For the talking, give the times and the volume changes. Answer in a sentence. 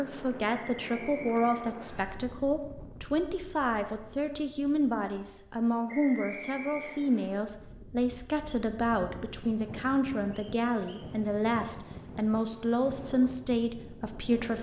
You can hear the talking from 0.0 to 14.5 s, at a steady volume.